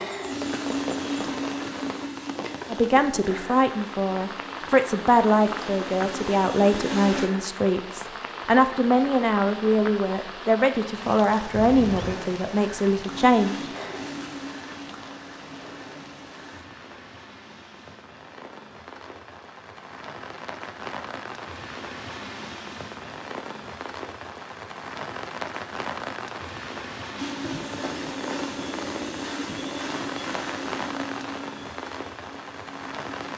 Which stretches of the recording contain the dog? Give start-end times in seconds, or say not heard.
not heard.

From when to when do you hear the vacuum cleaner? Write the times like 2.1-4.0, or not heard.
0.0-7.3, 13.1-16.6, 27.1-33.3.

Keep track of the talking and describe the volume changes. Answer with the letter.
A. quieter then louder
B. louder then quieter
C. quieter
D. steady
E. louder
D.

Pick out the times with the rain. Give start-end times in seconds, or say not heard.
0.0-33.3.